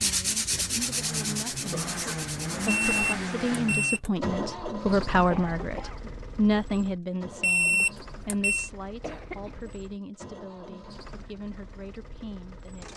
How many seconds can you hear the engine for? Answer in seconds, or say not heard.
13 s.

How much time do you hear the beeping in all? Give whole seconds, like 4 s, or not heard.
3 s.